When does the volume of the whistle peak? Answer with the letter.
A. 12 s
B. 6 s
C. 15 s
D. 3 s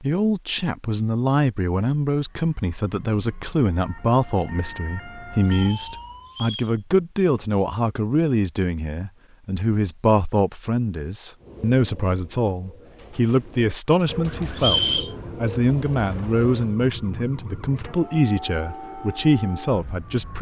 C.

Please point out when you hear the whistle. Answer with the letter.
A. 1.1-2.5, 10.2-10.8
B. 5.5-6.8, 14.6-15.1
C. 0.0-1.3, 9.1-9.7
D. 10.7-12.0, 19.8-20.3
B.